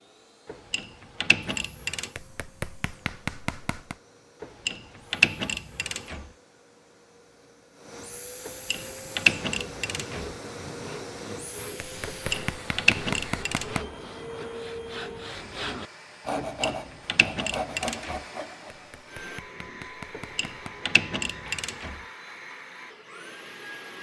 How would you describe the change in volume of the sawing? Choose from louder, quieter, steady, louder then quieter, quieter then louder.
louder.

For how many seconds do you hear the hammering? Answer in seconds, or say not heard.
6 s.